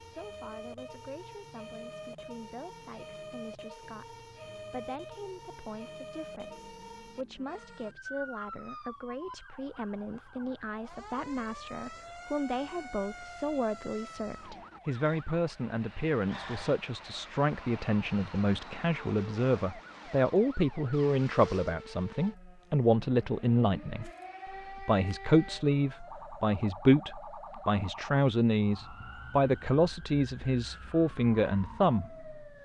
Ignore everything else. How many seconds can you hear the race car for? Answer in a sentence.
You can't hear the race car here.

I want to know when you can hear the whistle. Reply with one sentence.
The whistle can't be heard in this clip.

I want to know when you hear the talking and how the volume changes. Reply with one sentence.
You can hear the talking from 0.0 to 24.1 s, getting louder; and from 24.7 to 32.2 s, at a steady volume.